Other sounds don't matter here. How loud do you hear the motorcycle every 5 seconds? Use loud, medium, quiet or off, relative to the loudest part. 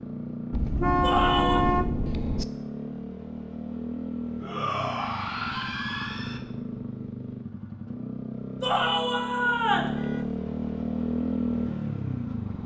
medium, medium, loud.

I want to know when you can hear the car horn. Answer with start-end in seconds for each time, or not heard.
0.5-2.5, 9.8-10.3.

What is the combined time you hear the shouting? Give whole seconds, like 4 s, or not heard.
4 s.